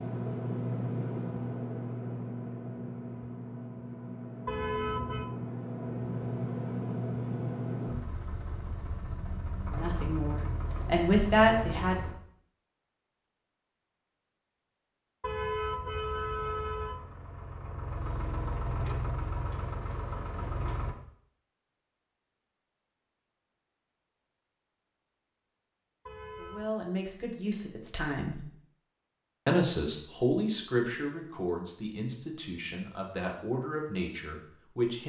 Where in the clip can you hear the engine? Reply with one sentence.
The engine can be heard from 0.0 to 12.2 s and from 15.6 to 20.9 s.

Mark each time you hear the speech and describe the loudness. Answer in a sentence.
You can hear the speech briefly from 9.7 to 12.1 s; briefly from 26.4 to 28.4 s; and from 29.4 to 35.0 s, getting quieter.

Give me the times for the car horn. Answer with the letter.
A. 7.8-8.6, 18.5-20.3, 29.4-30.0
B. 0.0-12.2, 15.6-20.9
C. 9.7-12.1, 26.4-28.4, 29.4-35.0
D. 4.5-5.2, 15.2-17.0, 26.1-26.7
D.